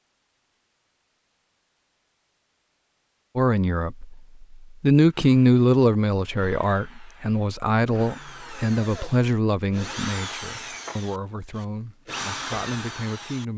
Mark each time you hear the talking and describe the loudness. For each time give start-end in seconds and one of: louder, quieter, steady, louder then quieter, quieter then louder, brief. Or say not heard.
3.4-13.5 quieter.